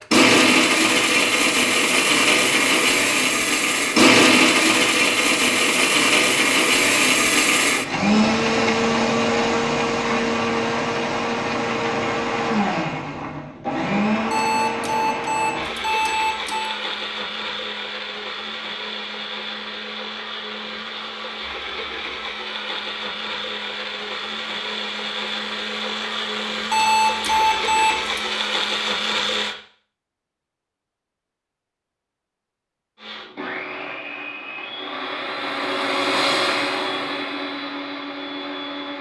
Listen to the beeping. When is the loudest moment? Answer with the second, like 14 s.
27 s.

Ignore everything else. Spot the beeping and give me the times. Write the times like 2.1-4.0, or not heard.
14.3-16.8, 26.7-28.2.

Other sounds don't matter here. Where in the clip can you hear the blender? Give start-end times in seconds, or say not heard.
0.0-29.6, 33.0-38.9.